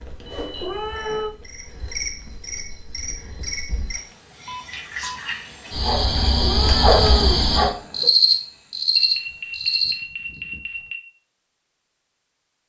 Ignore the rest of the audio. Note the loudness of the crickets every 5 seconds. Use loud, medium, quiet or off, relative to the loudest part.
quiet, loud, off.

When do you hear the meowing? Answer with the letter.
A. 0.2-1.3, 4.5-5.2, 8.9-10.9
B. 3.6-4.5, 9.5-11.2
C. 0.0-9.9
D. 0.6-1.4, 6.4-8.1
D.